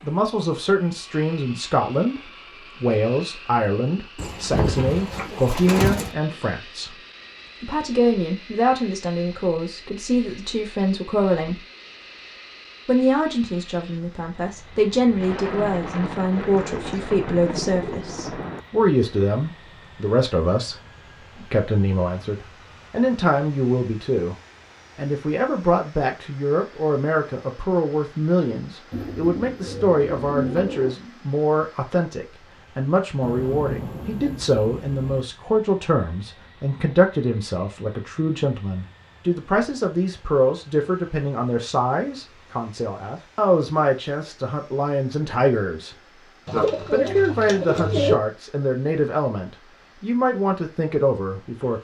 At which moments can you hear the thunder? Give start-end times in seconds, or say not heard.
15.2-18.6, 33.2-35.2.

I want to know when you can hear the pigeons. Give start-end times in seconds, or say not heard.
4.2-6.2, 16.4-18.1, 28.9-30.9, 46.5-48.1.